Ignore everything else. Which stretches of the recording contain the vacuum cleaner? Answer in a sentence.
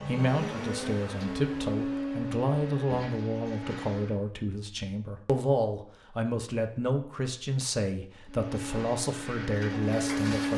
You can hear the vacuum cleaner from 0.0 to 4.2 s and from 8.2 to 10.5 s.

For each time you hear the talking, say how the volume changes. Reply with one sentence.
The talking can be heard from 0.1 to 10.5 s, at a steady volume.